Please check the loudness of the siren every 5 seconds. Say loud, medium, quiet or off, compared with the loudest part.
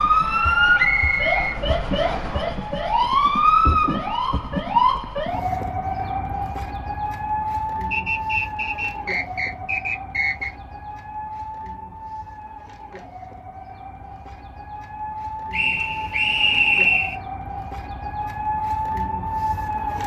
loud, medium, quiet, medium.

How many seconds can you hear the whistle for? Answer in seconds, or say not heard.
6 s.